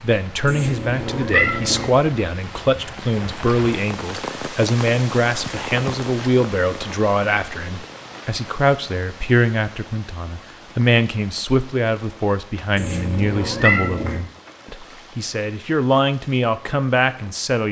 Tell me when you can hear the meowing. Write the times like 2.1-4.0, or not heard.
0.5-1.9, 12.8-14.2.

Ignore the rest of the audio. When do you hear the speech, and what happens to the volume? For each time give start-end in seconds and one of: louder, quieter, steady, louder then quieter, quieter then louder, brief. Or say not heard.
0.0-17.6 steady.